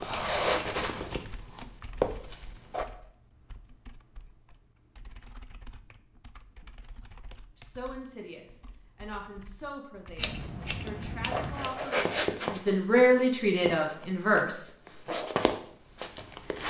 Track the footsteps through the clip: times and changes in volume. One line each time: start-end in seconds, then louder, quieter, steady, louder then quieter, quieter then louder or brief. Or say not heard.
0.0-2.9 brief
11.3-16.6 quieter then louder.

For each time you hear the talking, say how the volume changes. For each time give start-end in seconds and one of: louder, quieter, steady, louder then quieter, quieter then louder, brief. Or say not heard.
7.5-14.7 louder.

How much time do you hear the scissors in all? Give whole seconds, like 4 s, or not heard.
3 s.